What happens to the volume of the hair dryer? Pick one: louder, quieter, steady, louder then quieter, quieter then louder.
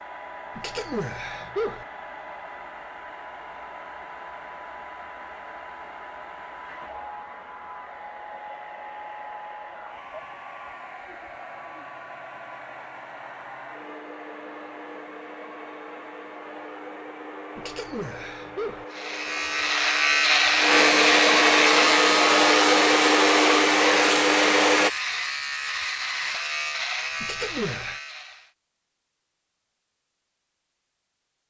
louder.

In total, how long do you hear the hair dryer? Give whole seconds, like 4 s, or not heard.
25 s.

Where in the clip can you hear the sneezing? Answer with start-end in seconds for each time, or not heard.
0.6-1.9, 17.6-18.9, 27.2-28.0.